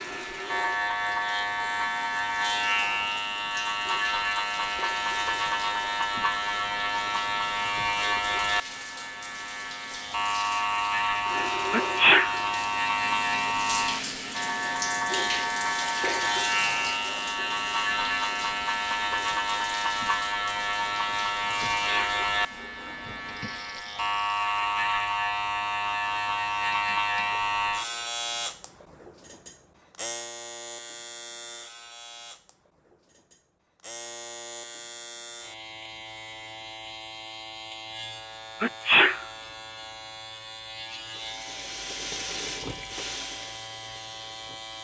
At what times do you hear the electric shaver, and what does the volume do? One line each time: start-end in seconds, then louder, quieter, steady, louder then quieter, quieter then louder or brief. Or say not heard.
0.0-44.7 quieter.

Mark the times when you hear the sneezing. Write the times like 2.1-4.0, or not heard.
11.7-12.3, 21.6-22.2, 38.6-39.2.